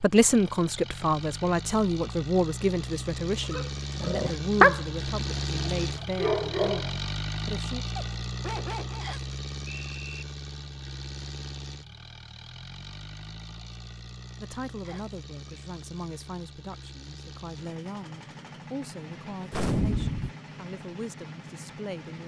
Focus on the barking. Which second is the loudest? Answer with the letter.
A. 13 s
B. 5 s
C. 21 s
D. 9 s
B.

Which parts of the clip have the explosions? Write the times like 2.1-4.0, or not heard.
19.5-20.3.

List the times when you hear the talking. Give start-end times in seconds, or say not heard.
0.0-7.8, 14.4-22.2.